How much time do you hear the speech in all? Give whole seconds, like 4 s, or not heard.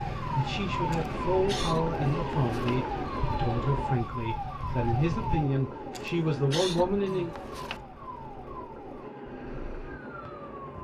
7 s.